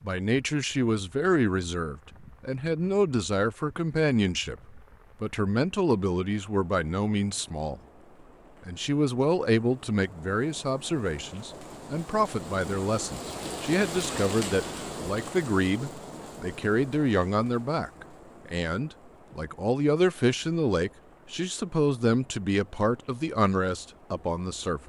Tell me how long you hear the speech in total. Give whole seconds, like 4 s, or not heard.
24 s.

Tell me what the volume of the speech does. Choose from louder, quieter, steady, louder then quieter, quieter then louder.
steady.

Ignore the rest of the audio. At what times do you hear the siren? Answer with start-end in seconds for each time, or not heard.
not heard.